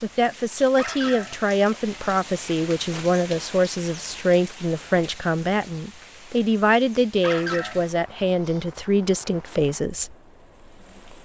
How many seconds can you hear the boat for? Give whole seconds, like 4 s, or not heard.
not heard.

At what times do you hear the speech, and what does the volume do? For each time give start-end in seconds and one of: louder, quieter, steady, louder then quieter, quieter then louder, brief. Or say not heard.
0.0-10.2 steady.